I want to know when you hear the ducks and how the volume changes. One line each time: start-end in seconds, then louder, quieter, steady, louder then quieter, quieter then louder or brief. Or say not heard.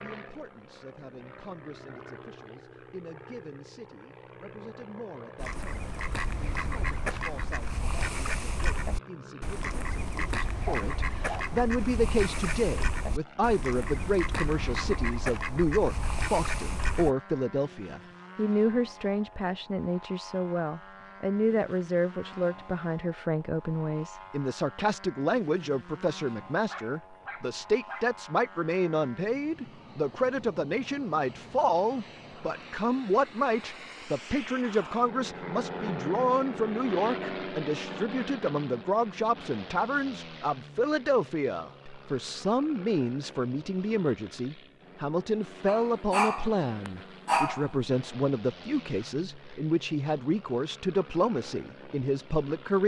5.4-17.1 steady.